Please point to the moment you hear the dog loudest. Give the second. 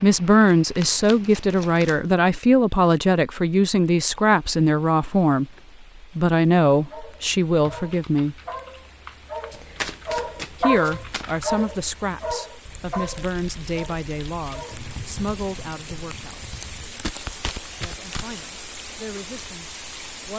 11 s.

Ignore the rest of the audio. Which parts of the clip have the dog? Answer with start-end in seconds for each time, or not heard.
6.9-14.8.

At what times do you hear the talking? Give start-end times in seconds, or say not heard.
0.0-5.5, 6.2-8.3, 10.6-16.5, 17.8-20.3.